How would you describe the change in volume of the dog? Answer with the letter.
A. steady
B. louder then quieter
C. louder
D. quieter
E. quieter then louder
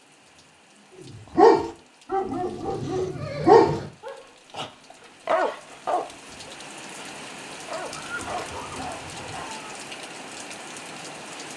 D.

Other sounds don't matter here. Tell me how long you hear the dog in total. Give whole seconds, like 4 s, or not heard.
8 s.